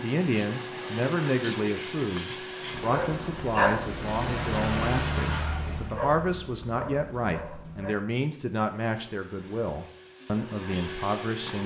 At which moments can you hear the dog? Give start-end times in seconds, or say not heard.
2.7-8.0.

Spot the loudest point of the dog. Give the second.
4 s.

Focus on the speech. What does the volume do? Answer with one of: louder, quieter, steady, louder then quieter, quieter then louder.
steady.